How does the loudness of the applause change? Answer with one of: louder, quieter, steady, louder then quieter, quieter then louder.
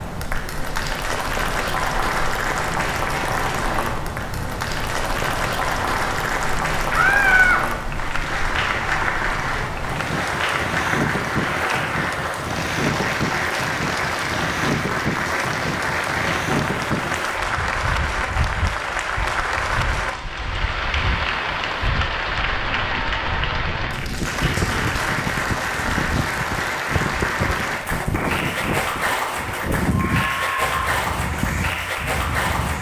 steady.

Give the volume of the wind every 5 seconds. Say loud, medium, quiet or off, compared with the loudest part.
medium, medium, loud, loud, medium, loud, loud.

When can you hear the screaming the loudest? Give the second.
7 s.